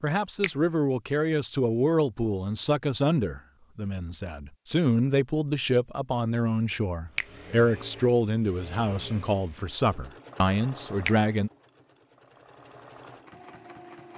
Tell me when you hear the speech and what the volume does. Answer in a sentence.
The speech can be heard from 0.0 to 11.5 s, at a steady volume.